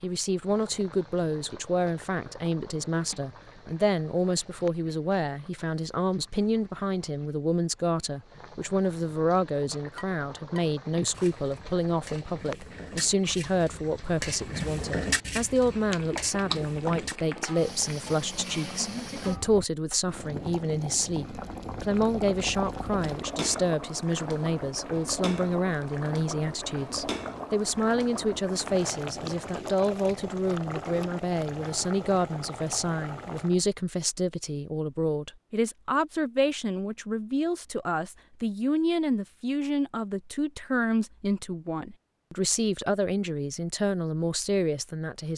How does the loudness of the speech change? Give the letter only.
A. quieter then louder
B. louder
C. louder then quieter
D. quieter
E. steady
E.